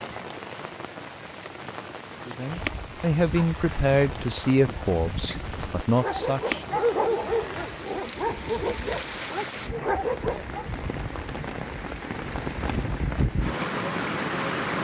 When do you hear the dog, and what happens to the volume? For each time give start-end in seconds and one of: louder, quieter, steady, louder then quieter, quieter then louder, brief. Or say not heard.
2.5-10.7 louder.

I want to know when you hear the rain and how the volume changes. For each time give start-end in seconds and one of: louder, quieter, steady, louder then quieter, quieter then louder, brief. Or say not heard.
0.0-14.7 louder.